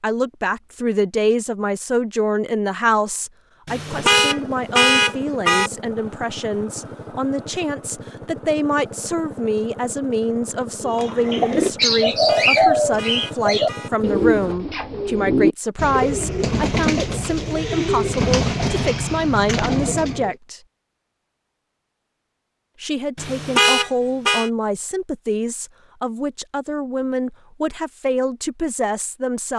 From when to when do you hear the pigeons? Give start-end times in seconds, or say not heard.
10.8-20.4.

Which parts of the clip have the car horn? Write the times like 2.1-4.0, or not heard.
3.6-5.7, 12.1-13.9, 23.1-24.5.